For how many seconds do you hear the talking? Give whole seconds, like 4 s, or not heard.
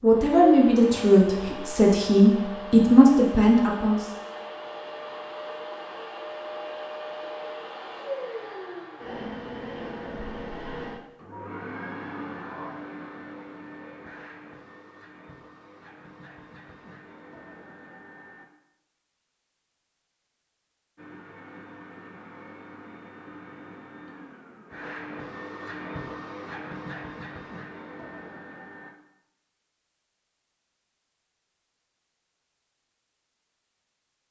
4 s.